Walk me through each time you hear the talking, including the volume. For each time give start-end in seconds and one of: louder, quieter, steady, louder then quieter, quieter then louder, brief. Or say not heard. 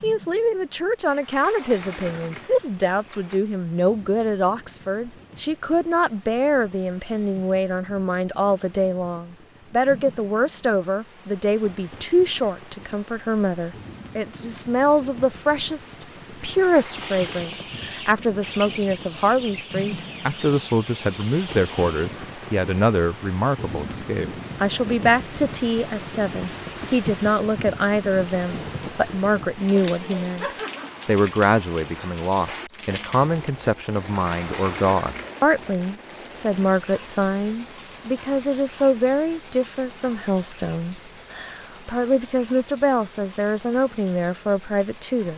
0.0-45.3 steady.